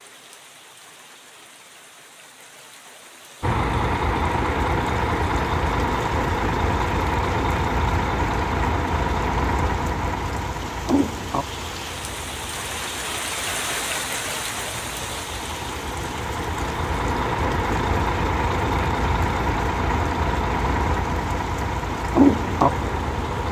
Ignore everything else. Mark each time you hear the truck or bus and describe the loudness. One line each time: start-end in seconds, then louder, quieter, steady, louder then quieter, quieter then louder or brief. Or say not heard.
3.4-23.4 quieter then louder.